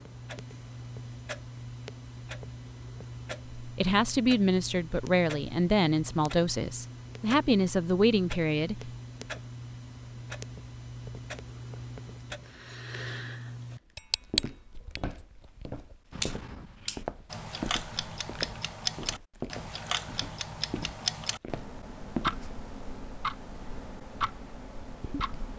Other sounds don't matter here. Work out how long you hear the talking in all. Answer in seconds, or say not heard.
5 s.